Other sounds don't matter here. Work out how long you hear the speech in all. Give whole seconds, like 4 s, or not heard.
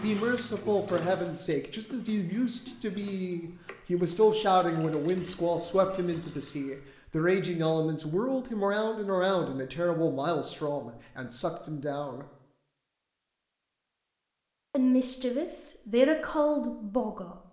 15 s.